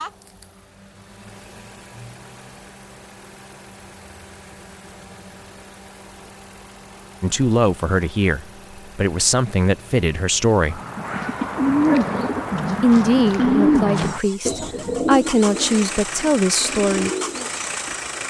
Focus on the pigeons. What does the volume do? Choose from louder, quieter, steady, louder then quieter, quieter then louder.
quieter.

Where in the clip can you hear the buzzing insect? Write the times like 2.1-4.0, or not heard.
not heard.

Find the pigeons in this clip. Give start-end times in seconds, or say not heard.
10.7-18.1.